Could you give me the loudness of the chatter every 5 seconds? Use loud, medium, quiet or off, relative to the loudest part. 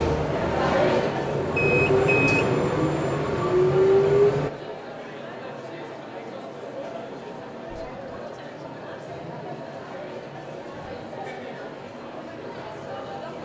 loud, medium, medium.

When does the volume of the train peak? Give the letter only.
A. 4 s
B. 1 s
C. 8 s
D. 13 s
A.